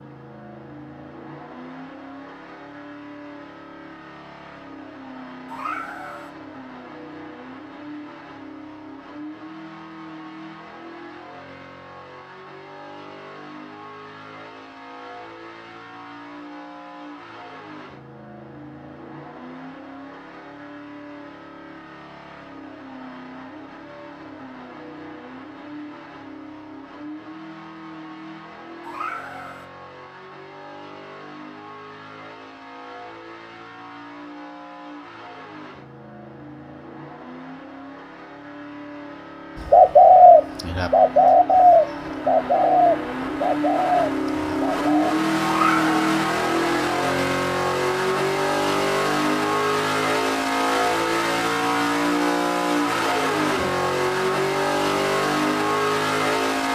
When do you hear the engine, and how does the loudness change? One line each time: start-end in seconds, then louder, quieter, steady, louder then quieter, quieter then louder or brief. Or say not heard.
0.0-56.7 louder.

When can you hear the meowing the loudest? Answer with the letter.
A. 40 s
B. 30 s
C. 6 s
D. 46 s
D.